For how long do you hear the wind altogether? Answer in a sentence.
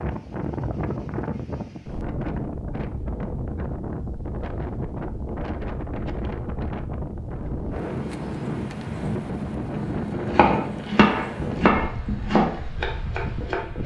The wind can be heard for 14 seconds in total.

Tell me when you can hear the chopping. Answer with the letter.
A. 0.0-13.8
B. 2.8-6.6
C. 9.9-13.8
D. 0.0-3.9
C.